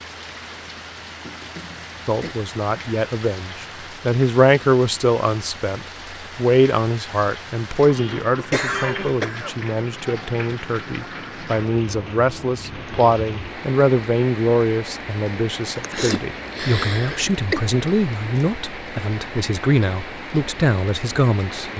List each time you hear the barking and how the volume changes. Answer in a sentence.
The barking can't be heard in this clip.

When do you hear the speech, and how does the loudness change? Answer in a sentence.
The speech can be heard from 2.0 to 21.7 s, at a steady volume.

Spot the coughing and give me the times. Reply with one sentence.
The coughing can be heard from 1.2 to 2.4 s, from 7.9 to 9.6 s and from 15.8 to 17.6 s.